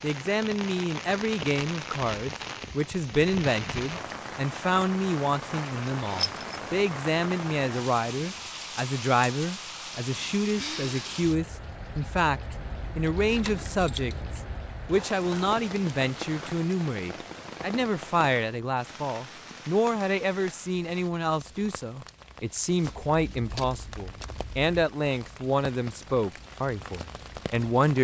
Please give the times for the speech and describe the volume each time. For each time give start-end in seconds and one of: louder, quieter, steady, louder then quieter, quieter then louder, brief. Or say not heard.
0.0-27.9 steady.